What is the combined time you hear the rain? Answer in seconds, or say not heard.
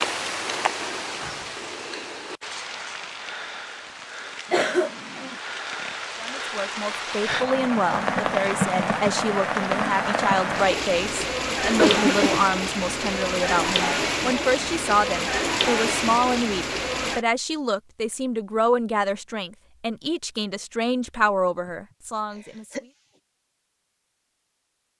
17 s.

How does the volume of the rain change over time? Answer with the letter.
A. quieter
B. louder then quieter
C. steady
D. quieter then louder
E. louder
E.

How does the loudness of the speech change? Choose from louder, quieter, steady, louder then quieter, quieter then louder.
steady.